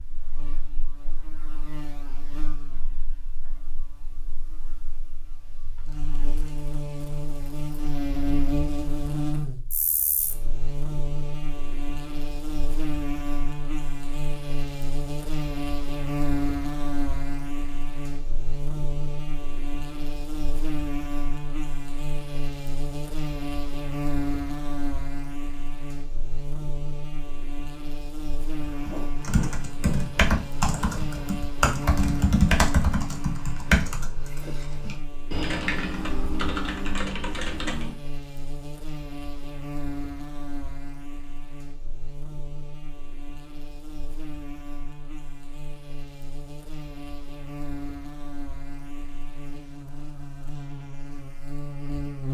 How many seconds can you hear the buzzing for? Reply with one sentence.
The buzzing can be heard for 52 seconds in total.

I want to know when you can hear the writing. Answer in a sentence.
The writing can't be heard in this clip.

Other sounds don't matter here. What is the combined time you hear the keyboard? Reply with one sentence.
You can hear the keyboard for 9 seconds altogether.